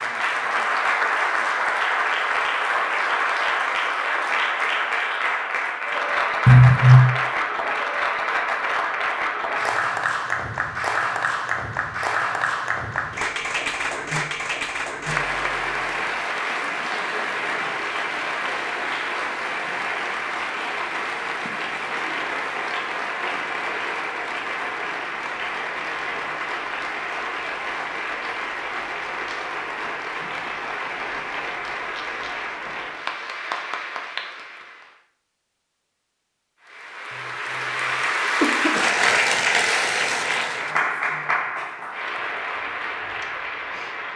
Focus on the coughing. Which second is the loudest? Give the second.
7 s.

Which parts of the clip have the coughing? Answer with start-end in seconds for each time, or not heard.
6.5-7.2, 38.4-38.9.